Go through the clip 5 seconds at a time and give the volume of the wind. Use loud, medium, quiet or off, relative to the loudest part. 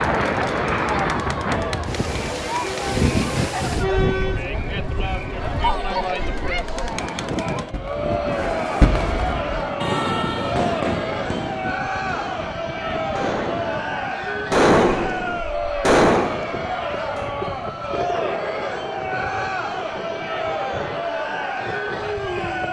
loud, medium, medium, medium, medium.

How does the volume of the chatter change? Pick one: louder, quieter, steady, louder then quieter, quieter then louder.
steady.